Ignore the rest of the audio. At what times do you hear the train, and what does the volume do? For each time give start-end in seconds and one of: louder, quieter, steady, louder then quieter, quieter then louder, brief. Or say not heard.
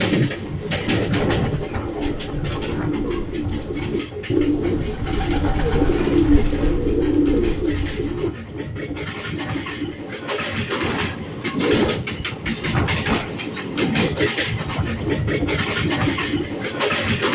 0.0-17.3 quieter then louder.